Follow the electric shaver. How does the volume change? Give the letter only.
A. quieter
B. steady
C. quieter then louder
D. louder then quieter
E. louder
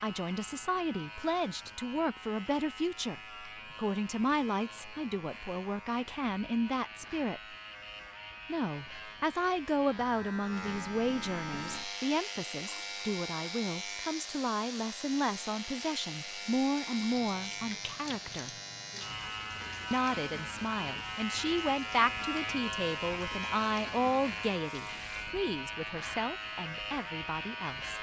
E.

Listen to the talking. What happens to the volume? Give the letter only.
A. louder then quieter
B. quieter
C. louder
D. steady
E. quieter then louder
D.